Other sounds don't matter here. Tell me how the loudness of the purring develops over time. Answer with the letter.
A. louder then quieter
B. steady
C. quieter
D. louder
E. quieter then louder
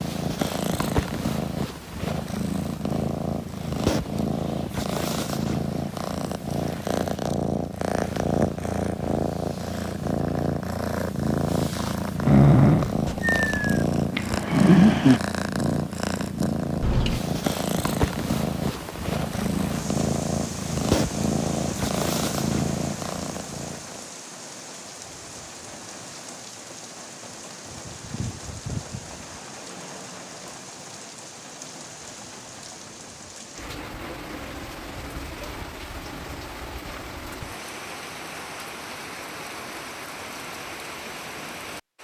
B.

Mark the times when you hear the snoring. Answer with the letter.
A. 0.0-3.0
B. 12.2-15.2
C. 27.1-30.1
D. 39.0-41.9
B.